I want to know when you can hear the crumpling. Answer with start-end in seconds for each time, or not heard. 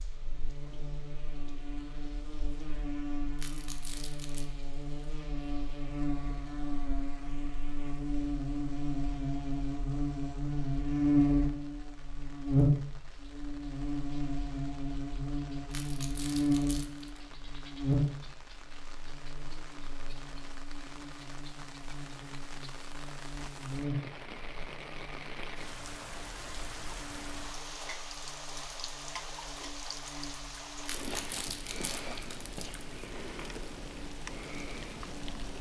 3.4-4.5, 15.7-17.2, 30.9-32.9.